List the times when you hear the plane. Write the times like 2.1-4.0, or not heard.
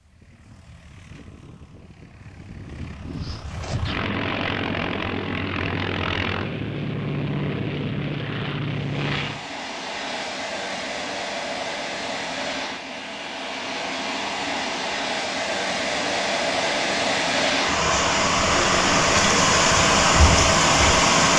0.0-9.4.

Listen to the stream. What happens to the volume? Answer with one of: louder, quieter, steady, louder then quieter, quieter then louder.
louder.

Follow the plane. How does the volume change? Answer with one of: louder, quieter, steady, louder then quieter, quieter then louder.
louder.